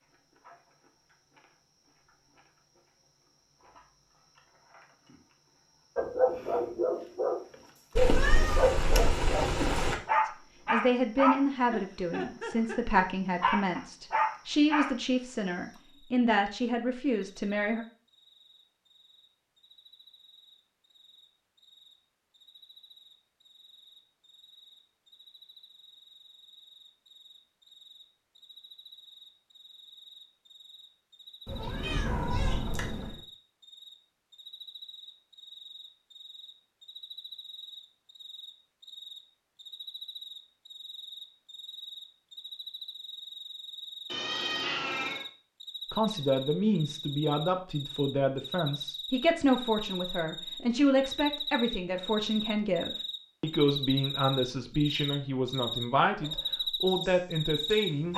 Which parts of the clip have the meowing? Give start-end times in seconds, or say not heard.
8.0-9.9, 31.4-33.2, 44.0-45.2.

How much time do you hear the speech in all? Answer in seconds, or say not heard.
20 s.